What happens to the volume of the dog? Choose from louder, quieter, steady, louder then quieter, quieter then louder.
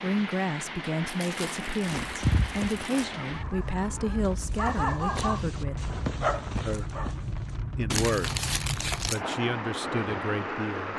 quieter then louder.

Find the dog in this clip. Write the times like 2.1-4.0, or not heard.
1.9-7.5.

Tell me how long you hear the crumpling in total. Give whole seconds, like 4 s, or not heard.
3 s.